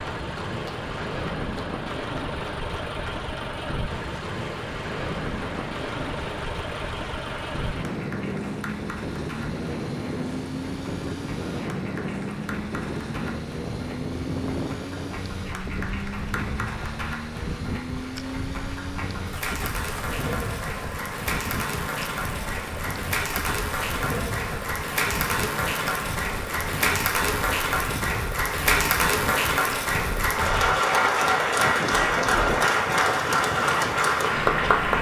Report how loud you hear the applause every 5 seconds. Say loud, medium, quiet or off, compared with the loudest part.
quiet, quiet, quiet, quiet, medium, loud, loud.